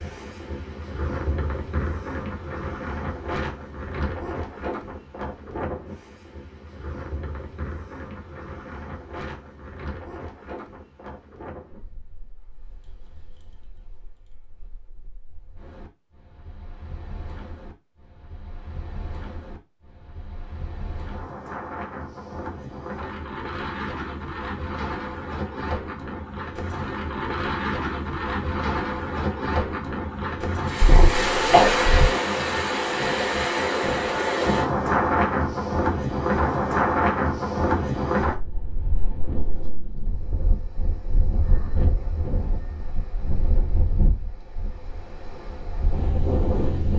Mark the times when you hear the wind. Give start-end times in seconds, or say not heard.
0.0-46.9.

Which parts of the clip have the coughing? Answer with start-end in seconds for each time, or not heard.
30.8-32.1.